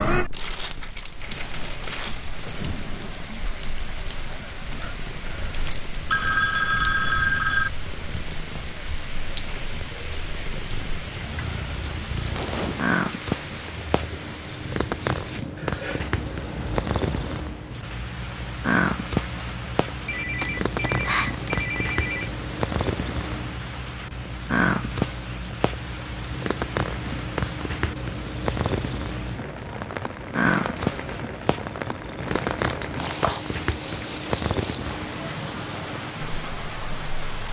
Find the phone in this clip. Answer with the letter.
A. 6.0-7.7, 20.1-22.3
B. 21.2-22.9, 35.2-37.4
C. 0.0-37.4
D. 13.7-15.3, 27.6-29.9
A.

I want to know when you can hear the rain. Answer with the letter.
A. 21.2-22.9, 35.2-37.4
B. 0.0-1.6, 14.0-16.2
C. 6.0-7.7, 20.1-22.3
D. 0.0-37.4
D.